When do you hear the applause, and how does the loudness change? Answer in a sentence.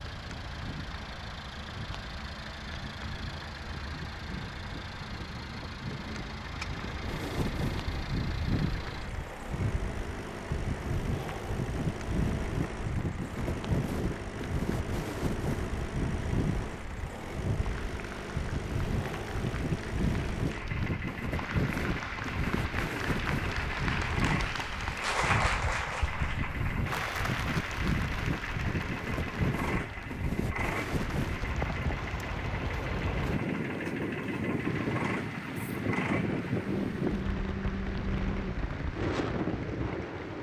You can hear the applause from 0.0 to 40.3 s, getting louder then quieter.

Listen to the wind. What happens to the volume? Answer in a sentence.
The loudness of the wind goes up.